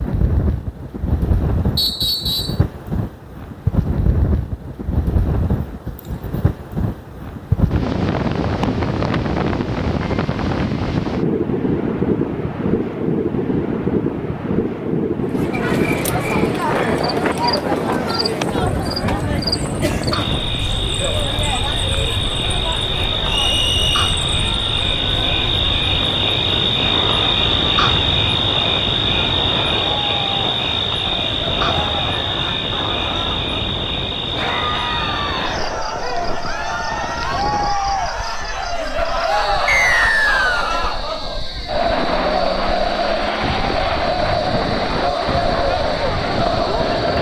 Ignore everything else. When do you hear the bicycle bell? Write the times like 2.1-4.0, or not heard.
not heard.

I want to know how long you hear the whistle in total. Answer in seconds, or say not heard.
3 s.